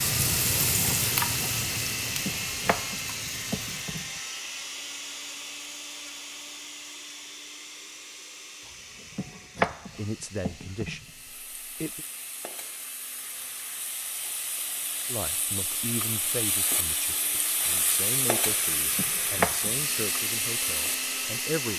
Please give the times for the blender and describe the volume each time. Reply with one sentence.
You can hear the blender from 0.0 to 21.7 s, getting quieter then louder.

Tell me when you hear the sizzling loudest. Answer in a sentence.
The volume of the sizzling peaks at 1 second.